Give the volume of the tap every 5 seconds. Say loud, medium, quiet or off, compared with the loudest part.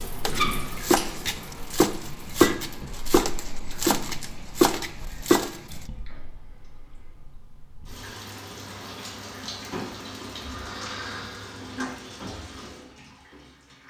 loud, medium, loud.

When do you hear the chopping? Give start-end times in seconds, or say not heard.
0.2-5.8.